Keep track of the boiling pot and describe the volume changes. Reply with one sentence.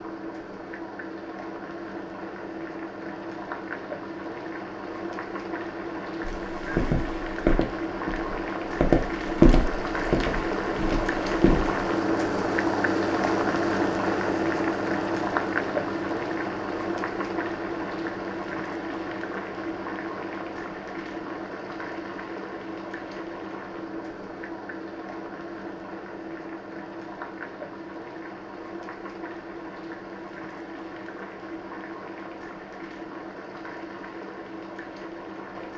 The loudness of the boiling pot goes up, then down.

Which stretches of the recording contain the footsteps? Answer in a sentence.
You can hear the footsteps from 6.2 to 11.8 s.